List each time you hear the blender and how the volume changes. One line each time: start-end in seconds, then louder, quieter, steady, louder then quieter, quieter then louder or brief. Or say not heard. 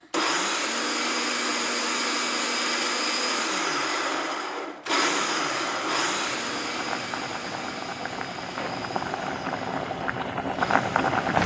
0.1-11.2 quieter.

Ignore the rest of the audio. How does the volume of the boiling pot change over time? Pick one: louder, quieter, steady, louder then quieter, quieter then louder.
louder.